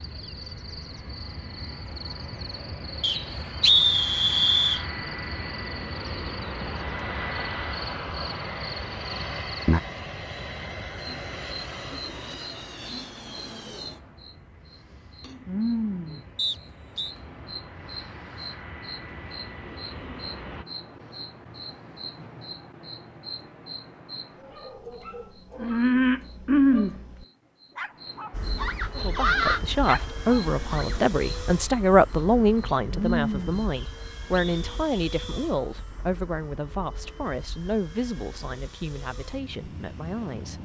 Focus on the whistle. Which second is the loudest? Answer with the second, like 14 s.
4 s.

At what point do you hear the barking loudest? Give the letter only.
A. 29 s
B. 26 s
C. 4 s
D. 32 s
A.